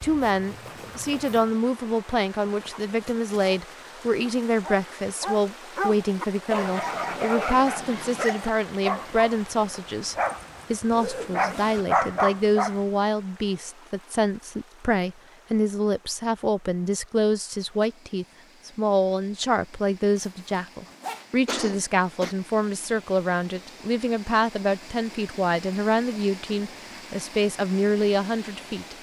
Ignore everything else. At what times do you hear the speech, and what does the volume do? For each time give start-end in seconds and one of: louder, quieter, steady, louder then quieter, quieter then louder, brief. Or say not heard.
0.0-28.9 steady.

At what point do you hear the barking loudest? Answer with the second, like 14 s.
12 s.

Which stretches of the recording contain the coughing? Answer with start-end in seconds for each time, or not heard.
21.4-22.4.